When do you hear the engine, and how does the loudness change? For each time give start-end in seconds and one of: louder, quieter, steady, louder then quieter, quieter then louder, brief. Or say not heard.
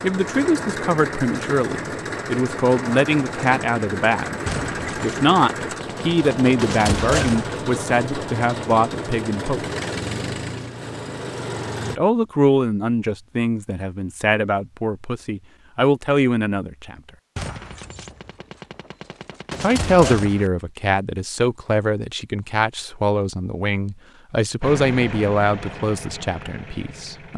0.0-12.0 steady
24.6-27.3 brief.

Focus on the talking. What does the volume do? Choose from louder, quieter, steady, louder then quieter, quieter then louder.
steady.